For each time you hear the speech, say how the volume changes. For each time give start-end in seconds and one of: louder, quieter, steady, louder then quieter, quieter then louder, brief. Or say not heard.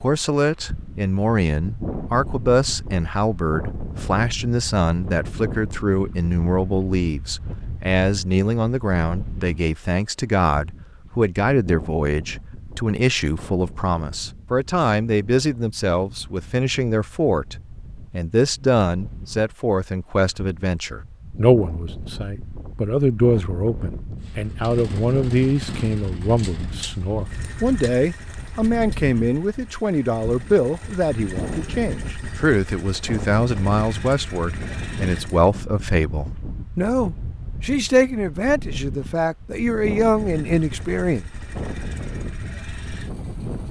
0.0-41.2 steady.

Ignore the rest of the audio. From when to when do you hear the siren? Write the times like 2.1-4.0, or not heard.
not heard.